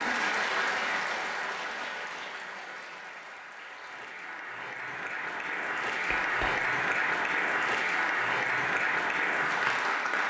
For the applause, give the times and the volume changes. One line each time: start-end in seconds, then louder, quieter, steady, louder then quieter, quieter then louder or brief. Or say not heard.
0.0-10.2 quieter then louder.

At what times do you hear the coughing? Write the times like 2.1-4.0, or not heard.
6.1-6.5.